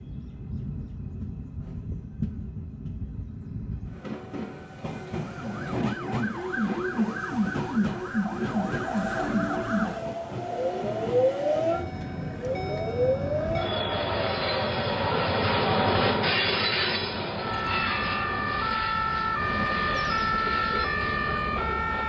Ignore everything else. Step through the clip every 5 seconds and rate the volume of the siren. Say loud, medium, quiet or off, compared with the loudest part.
off, loud, loud, loud, loud.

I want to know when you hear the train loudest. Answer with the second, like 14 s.
16 s.